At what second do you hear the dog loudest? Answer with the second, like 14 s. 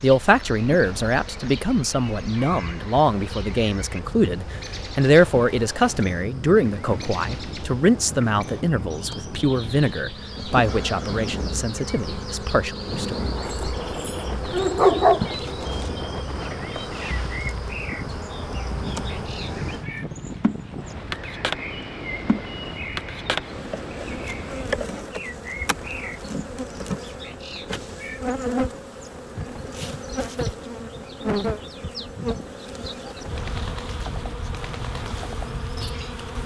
15 s.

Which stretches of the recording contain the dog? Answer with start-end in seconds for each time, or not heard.
13.4-15.2.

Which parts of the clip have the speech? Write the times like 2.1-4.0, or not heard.
0.0-13.2.